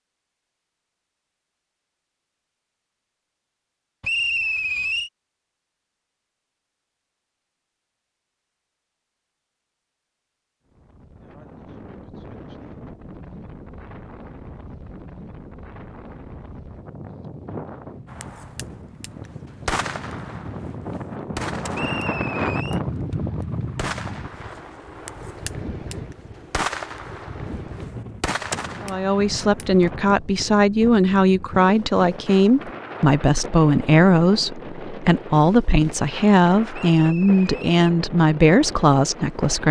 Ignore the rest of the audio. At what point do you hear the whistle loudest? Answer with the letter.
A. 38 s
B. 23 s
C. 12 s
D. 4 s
D.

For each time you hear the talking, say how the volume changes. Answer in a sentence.
The talking can be heard from 28.8 to 39.6 s, at a steady volume.